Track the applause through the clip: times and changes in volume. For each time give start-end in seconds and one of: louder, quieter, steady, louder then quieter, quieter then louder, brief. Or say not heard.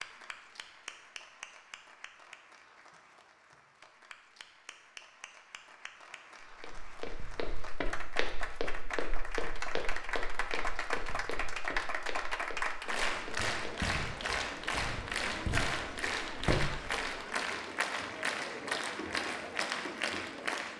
0.0-20.7 louder.